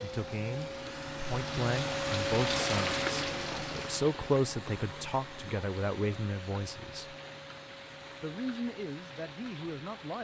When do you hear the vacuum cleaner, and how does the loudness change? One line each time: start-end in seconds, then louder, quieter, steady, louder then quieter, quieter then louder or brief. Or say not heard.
0.0-10.1 quieter.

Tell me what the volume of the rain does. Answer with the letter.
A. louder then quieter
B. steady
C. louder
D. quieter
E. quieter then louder
A.